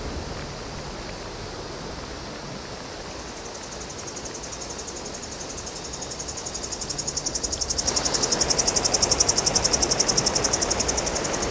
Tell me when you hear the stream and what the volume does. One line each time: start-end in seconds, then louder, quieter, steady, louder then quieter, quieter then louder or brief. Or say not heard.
0.0-11.4 louder.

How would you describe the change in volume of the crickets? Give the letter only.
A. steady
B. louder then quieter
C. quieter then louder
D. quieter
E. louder
E.